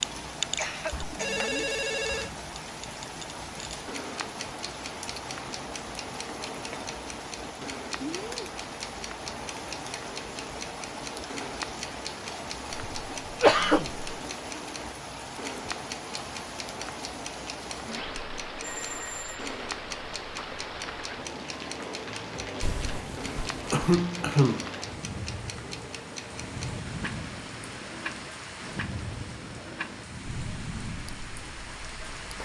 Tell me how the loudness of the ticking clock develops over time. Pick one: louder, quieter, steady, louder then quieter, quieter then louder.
steady.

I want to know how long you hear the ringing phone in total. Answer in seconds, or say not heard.
3 s.